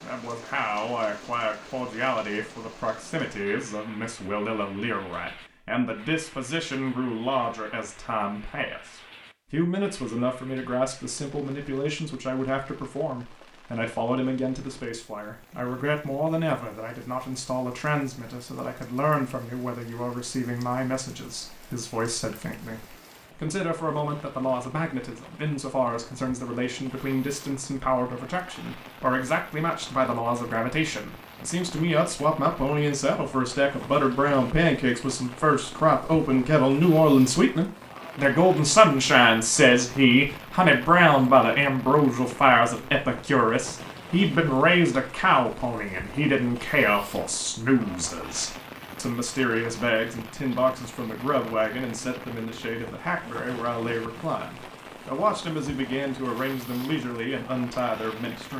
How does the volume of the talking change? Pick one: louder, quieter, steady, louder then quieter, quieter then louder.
louder then quieter.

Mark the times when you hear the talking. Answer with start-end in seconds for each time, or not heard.
0.0-58.5.